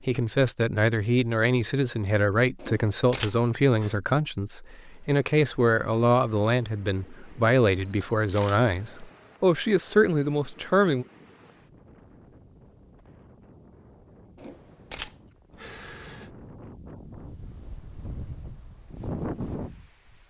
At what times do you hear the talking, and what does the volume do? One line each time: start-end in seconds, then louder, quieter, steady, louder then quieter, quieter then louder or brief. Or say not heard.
0.1-11.1 steady.